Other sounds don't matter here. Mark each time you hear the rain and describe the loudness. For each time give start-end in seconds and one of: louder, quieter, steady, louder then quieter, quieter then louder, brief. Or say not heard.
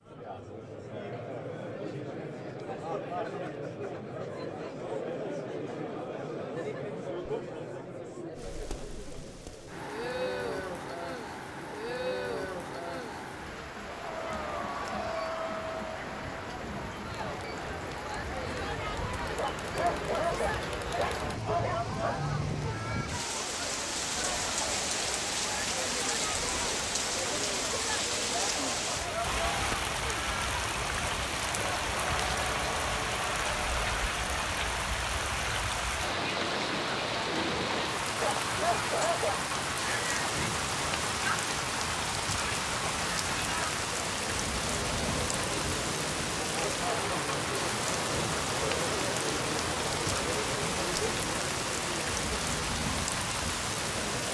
8.3-54.2 louder.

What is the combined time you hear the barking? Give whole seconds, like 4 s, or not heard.
4 s.